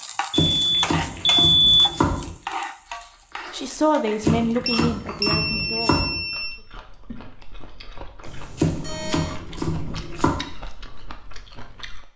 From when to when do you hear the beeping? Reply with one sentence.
The beeping can be heard from 0.5 to 1.9 s, from 4.7 to 6.5 s and from 8.2 to 9.4 s.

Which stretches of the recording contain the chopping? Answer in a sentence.
The chopping can be heard from 0.3 to 2.4 s, from 4.2 to 6.2 s and from 8.6 to 10.4 s.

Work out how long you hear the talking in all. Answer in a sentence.
You can hear the talking for 3 seconds altogether.